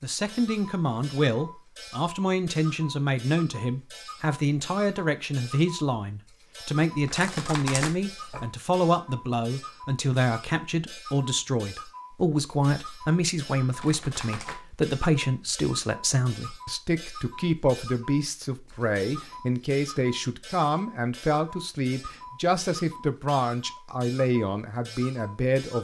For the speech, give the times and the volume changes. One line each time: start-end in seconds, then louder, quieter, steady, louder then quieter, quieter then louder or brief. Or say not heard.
0.0-25.7 steady.